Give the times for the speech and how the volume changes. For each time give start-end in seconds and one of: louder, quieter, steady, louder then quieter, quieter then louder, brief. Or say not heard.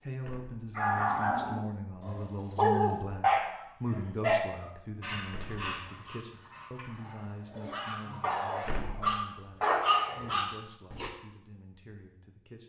0.0-12.6 quieter.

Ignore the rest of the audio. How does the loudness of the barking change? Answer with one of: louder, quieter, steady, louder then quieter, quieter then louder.
quieter then louder.